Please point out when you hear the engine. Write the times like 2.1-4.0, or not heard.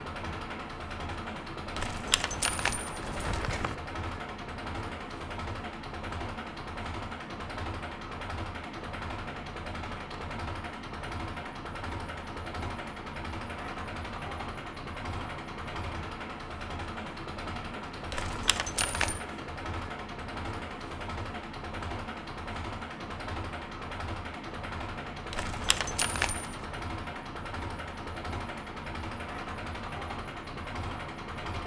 0.0-31.6.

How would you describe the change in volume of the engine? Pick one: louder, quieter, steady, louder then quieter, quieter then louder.
steady.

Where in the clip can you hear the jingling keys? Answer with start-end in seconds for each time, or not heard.
1.8-3.8, 18.1-19.2, 25.3-26.6.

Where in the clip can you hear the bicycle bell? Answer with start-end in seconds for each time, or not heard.
not heard.